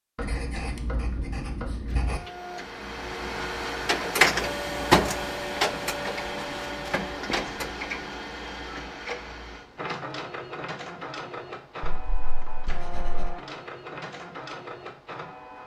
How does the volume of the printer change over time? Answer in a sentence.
The loudness of the printer goes down.